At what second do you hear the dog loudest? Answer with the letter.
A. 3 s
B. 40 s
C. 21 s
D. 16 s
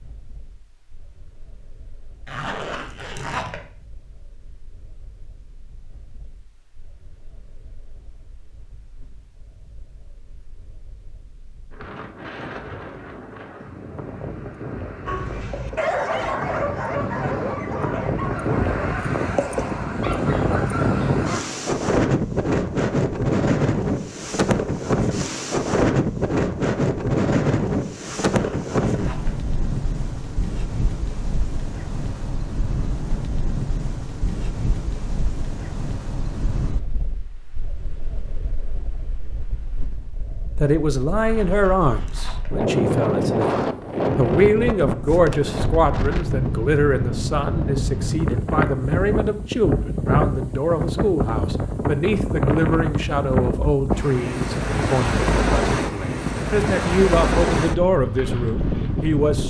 D.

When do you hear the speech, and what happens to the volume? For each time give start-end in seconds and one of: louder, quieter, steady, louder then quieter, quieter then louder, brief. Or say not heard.
40.5-59.4 steady.